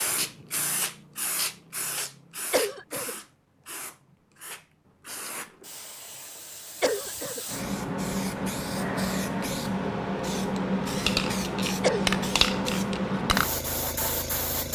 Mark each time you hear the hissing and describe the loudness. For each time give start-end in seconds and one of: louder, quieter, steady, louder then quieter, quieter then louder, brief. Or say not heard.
0.0-14.7 quieter then louder.